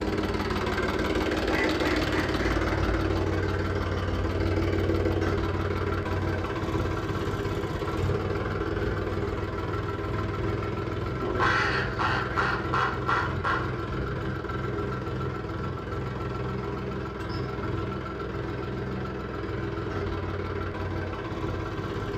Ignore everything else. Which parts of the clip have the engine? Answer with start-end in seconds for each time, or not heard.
0.0-22.1.